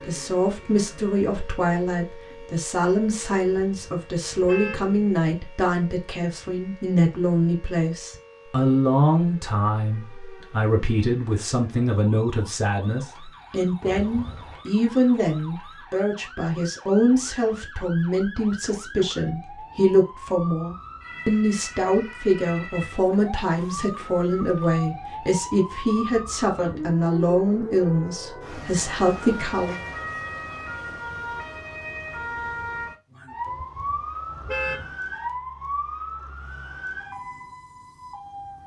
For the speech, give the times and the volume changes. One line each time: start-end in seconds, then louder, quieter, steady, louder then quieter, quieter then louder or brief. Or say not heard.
0.1-29.8 steady.